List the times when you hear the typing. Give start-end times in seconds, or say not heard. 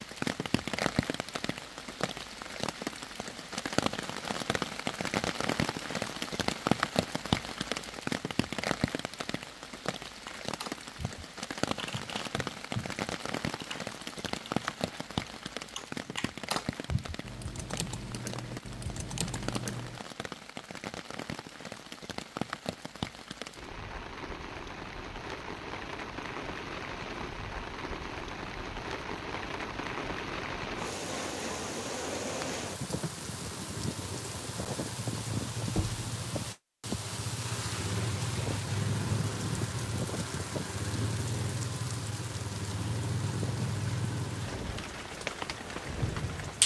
10.2-20.0.